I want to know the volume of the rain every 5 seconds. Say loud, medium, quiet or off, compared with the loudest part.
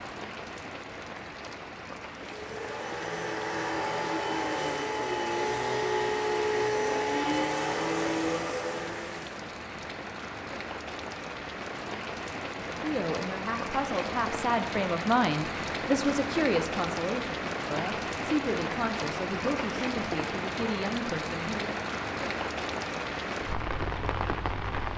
medium, medium, loud, loud, loud.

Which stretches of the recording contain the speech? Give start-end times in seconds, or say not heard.
12.7-21.8.